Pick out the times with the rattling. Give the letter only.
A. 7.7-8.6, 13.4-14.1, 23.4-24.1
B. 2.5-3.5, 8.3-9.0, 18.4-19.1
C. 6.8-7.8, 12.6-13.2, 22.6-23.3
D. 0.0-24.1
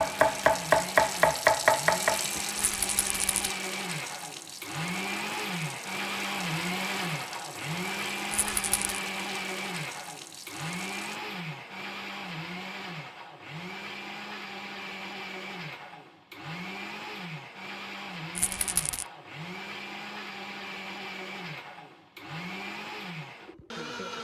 B.